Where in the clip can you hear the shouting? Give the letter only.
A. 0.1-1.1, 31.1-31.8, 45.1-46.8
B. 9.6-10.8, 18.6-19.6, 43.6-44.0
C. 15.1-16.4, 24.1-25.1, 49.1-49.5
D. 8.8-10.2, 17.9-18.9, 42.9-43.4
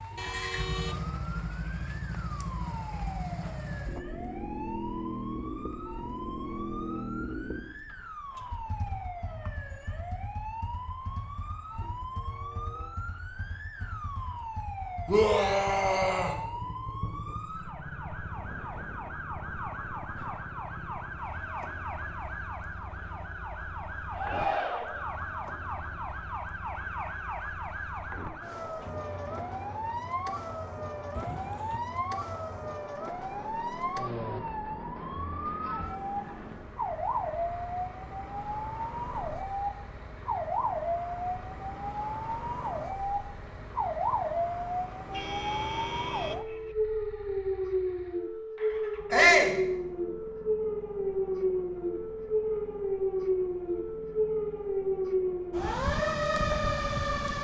C.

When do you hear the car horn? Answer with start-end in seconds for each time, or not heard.
0.1-1.1, 31.1-31.8, 45.1-46.8.